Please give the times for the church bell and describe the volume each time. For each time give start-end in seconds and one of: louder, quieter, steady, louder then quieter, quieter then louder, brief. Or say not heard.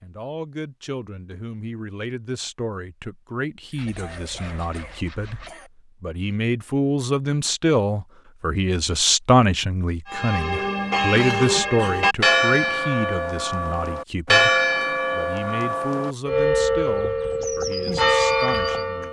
10.1-19.0 steady.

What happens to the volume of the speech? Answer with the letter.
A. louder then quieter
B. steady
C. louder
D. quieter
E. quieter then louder
A.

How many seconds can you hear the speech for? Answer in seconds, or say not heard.
19 s.